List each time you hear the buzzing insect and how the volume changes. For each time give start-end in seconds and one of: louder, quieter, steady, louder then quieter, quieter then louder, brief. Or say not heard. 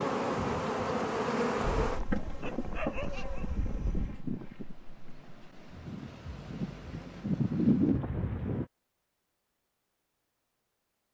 0.0-8.7 quieter then louder.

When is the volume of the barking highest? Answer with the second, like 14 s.
3 s.